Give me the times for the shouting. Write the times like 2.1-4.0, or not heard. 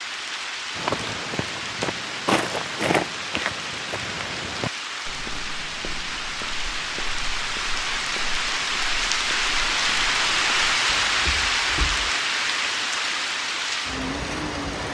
not heard.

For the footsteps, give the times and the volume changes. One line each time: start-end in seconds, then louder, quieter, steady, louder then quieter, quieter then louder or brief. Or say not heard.
0.8-12.1 quieter.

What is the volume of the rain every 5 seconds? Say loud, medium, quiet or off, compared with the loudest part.
medium, loud, loud.